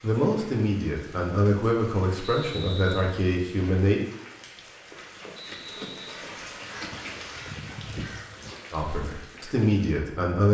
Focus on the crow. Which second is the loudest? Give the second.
8 s.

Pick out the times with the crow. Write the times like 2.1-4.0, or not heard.
6.7-8.6.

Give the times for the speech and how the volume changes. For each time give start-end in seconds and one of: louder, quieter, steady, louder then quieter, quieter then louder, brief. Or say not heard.
0.0-4.0 steady
8.7-10.4 brief.